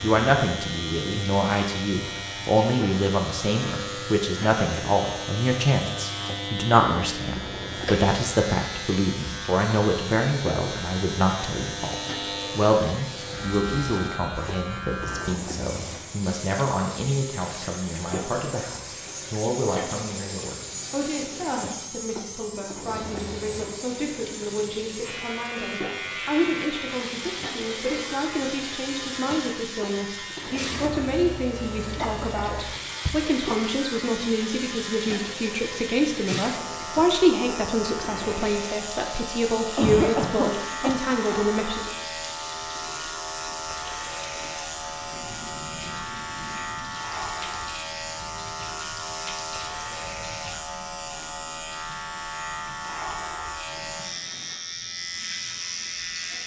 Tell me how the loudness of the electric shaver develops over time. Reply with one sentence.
The volume of the electric shaver stays about the same.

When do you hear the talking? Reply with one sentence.
The talking can be heard from 0.0 to 41.9 s.